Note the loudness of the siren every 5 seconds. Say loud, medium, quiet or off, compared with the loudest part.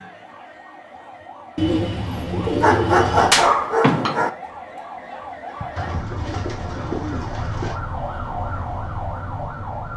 medium, loud.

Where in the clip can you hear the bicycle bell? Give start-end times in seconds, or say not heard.
not heard.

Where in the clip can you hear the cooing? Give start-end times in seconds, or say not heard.
1.6-3.4, 5.8-7.8.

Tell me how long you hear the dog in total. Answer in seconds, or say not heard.
2 s.